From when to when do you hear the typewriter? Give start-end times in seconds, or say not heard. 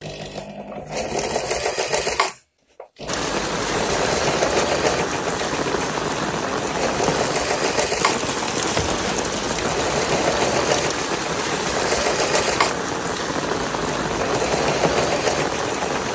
not heard.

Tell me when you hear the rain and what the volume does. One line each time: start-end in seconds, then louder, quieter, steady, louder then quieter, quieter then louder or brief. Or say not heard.
3.0-16.1 steady.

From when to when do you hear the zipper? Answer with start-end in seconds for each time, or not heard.
8.7-9.2.